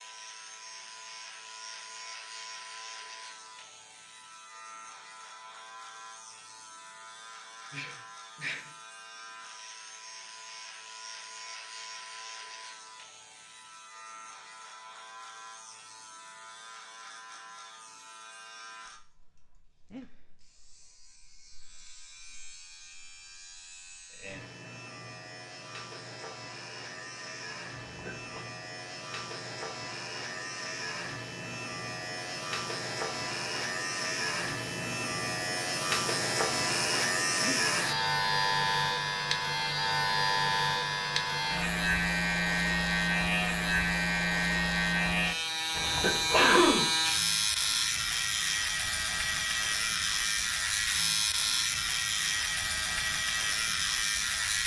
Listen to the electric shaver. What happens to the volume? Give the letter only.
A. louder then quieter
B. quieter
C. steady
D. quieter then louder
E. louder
E.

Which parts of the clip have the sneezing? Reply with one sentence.
You can hear the sneezing from 7.7 to 8.6 s, from 27.8 to 28.4 s and from 45.8 to 46.9 s.